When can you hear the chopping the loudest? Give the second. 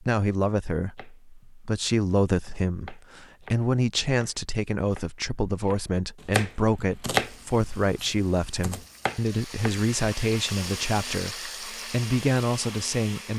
7 s.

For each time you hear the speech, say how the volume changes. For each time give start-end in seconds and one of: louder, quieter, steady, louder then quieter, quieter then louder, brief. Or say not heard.
0.0-13.3 steady.